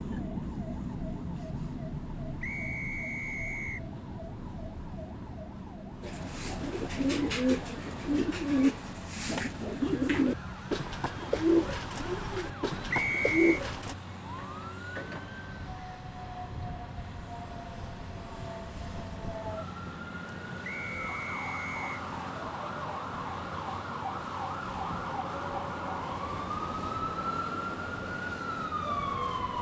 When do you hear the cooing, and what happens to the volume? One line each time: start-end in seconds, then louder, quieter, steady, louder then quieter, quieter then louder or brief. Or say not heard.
6.0-13.9 steady.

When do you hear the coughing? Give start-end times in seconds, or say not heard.
not heard.